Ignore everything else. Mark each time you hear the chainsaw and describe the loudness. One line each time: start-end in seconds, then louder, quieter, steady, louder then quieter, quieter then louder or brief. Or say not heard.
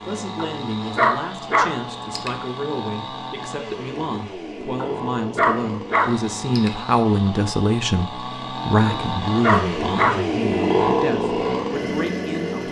0.0-12.6 louder.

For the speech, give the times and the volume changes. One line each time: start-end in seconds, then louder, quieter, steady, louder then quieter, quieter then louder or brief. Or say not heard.
0.0-12.6 louder then quieter.